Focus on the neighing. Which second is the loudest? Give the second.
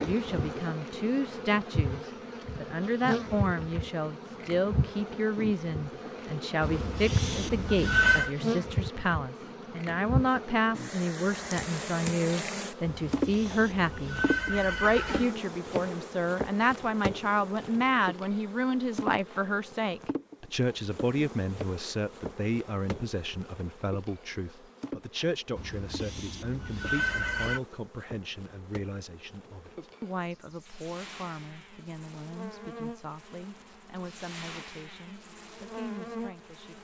8 s.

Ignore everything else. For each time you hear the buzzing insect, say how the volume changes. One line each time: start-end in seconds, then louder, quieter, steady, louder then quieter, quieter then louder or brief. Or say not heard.
0.0-36.7 quieter.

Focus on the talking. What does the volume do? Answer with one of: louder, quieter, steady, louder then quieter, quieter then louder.
quieter.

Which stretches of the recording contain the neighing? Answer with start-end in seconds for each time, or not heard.
6.6-8.3, 13.1-15.3, 25.6-27.6.